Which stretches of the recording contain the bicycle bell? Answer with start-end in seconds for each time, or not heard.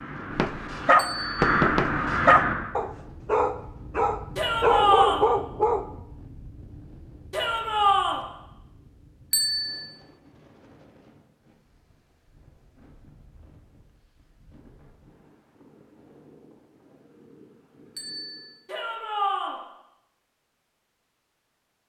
0.9-1.4, 9.3-9.8, 17.9-18.5.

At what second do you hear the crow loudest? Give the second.
2 s.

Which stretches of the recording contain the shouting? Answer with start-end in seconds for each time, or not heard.
4.3-5.2, 7.3-8.2, 18.6-19.6.